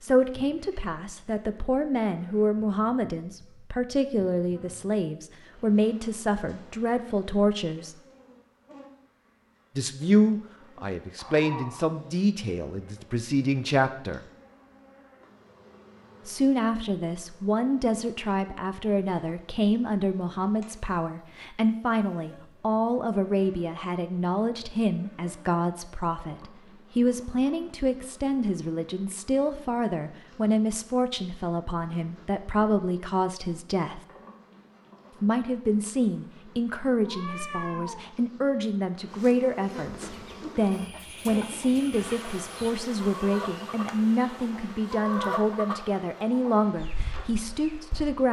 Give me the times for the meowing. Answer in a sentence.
The meowing can be heard from 11.2 to 11.9 s and from 37.0 to 38.1 s.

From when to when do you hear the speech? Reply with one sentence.
You can hear the speech from 0.0 to 8.0 s, from 9.8 to 14.2 s, from 16.2 to 34.0 s and from 35.2 to 48.2 s.